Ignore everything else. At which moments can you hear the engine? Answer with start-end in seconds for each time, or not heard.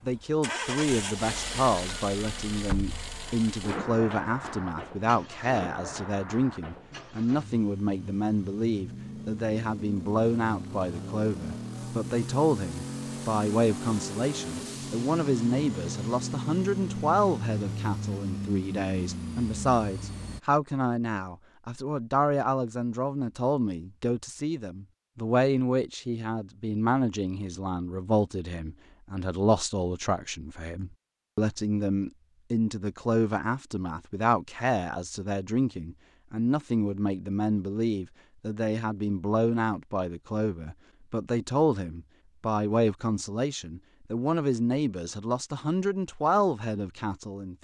0.0-20.4.